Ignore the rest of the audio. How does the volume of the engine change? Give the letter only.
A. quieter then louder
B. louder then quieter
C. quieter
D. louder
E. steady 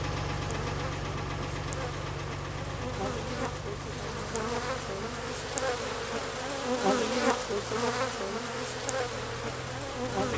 C.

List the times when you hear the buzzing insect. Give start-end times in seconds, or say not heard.
0.0-10.3.